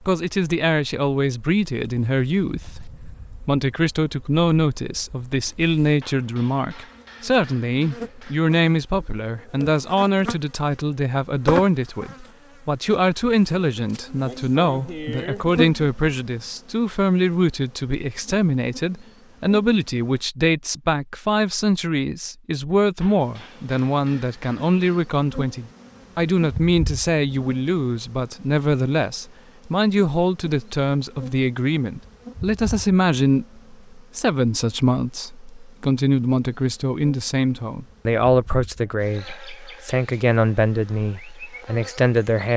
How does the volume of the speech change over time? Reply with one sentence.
The loudness of the speech stays about the same.